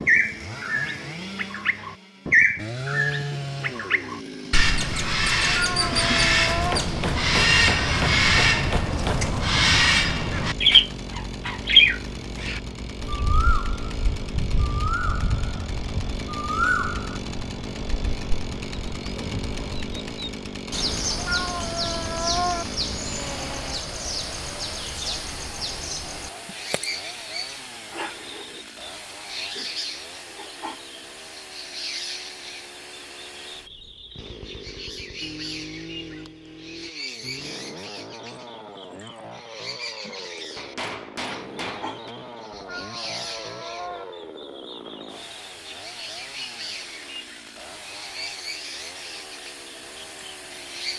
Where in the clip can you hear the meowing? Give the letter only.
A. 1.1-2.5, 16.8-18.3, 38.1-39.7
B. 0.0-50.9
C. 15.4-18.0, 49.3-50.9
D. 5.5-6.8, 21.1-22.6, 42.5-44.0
D.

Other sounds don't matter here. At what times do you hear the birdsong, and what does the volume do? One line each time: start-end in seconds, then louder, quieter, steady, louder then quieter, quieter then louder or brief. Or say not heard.
0.0-50.9 quieter.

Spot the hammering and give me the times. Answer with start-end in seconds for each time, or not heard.
6.7-9.2, 40.5-42.1.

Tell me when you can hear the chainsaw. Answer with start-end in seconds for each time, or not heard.
0.0-50.9.